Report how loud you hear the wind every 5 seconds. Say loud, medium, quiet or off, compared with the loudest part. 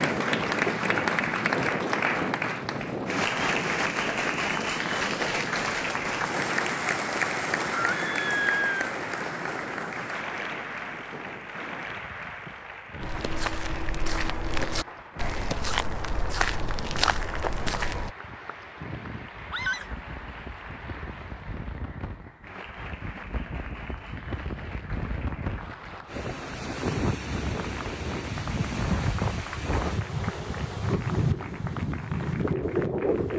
loud, medium, quiet, quiet, quiet, loud, loud.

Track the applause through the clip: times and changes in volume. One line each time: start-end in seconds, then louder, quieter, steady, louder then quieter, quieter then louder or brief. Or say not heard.
0.0-33.3 quieter.